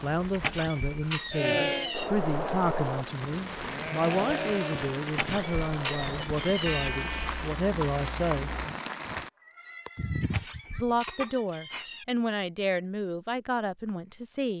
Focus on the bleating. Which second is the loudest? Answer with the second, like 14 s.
2 s.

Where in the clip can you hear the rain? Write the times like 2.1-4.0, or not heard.
0.0-9.3.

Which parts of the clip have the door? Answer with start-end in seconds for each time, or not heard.
0.3-2.1, 5.0-6.9, 10.2-12.1.